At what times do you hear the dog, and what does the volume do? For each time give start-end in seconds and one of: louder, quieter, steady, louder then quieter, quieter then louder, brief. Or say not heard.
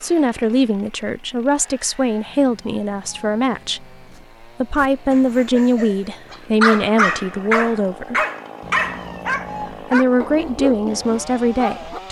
4.8-12.0 louder then quieter.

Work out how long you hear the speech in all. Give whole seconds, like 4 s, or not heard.
10 s.